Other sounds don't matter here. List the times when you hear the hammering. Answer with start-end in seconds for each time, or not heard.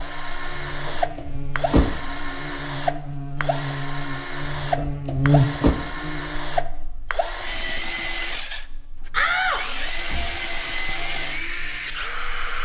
not heard.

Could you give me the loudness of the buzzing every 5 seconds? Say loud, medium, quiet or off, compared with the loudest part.
medium, loud, quiet.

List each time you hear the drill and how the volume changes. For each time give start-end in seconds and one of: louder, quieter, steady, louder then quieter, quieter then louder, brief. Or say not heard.
0.0-12.6 steady.